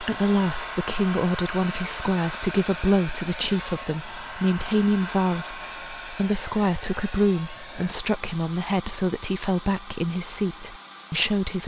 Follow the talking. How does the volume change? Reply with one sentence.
The volume of the talking stays about the same.